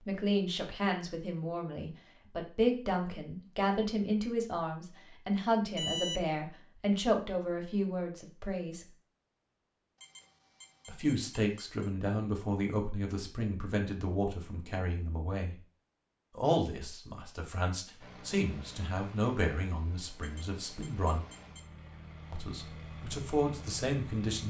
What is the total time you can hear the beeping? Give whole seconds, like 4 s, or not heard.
4 s.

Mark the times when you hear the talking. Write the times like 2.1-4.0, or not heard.
0.1-8.8, 10.8-15.6, 16.4-21.2, 22.3-24.4.